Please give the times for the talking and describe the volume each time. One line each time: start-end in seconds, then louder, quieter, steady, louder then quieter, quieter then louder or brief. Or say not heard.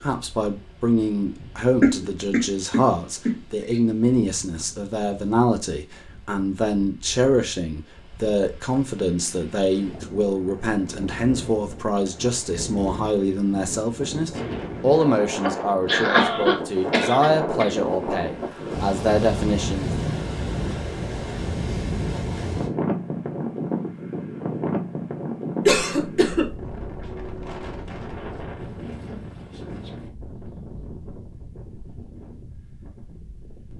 0.0-19.9 steady.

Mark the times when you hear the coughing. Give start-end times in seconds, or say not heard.
1.8-3.4, 15.4-17.7, 25.6-26.4.